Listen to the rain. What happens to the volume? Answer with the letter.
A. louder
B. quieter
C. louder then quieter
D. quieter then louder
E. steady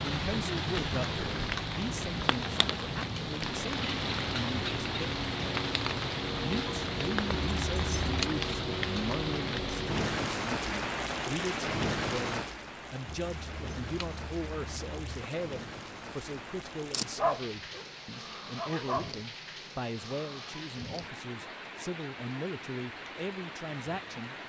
B.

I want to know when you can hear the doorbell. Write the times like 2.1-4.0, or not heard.
not heard.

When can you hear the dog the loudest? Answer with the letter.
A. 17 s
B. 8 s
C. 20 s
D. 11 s
A.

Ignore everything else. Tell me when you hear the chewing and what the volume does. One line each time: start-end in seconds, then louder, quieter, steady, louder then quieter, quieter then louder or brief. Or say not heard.
not heard.